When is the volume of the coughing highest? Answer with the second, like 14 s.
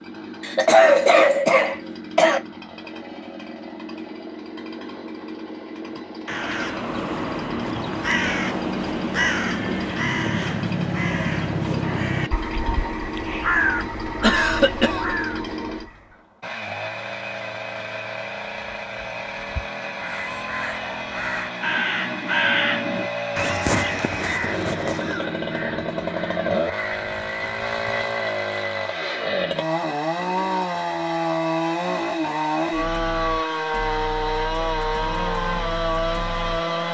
1 s.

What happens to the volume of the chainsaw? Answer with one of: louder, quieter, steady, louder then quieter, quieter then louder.
louder.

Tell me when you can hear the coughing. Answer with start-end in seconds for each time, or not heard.
0.4-2.4, 14.2-15.2, 25.0-25.4.